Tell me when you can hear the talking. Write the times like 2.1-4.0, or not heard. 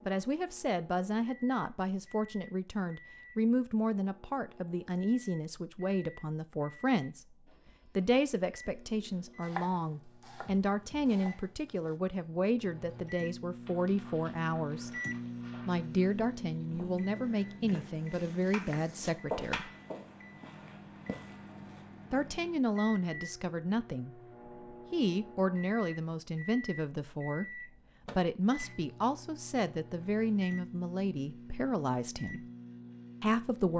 0.1-7.2, 8.0-14.9, 15.7-19.7, 22.1-24.2, 24.9-32.5, 33.2-33.7.